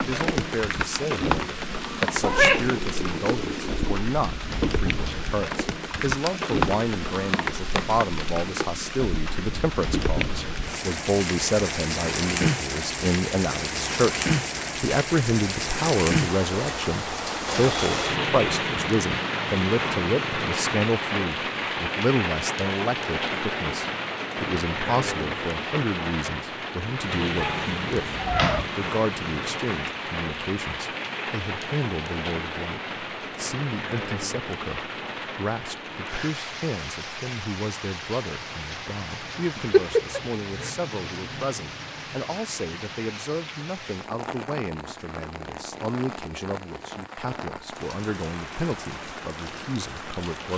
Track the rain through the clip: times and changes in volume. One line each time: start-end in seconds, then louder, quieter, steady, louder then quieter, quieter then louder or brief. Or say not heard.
0.0-50.5 quieter.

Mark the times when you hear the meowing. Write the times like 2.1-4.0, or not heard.
2.2-4.0, 27.4-28.6, 39.5-40.7.